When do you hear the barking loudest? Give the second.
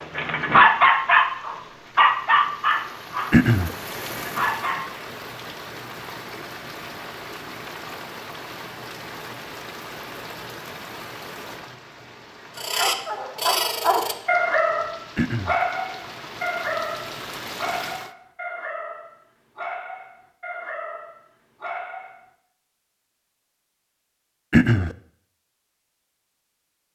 1 s.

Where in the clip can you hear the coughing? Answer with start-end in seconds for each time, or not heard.
3.3-3.7, 15.2-15.6, 24.5-24.9.